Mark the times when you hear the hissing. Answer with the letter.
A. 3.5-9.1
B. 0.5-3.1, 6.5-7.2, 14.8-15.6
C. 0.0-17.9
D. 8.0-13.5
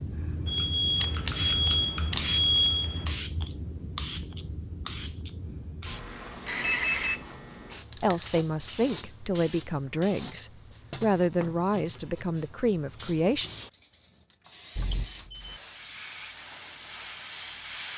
C.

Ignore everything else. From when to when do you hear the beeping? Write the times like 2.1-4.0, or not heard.
0.5-3.1, 6.5-7.2, 14.8-15.6.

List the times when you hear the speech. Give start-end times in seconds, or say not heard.
8.0-13.5.